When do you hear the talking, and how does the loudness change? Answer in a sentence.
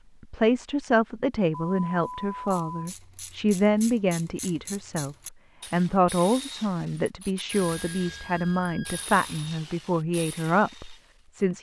You can hear the talking from 0.2 to 11.5 s, at a steady volume.